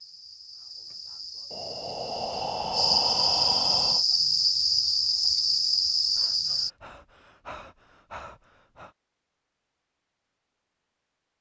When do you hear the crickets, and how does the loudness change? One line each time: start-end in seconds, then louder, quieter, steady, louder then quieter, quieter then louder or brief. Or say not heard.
0.0-6.7 louder.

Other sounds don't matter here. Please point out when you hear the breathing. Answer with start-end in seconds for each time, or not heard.
1.5-4.0, 6.2-8.9.